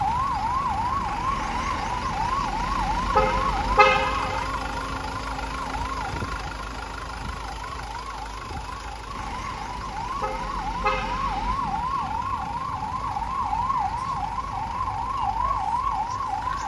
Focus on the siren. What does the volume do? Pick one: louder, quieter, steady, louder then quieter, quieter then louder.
quieter then louder.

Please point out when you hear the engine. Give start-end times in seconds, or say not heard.
0.0-16.6.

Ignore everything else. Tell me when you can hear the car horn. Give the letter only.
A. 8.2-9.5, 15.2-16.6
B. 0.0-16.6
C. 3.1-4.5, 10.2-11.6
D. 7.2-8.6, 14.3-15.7
C.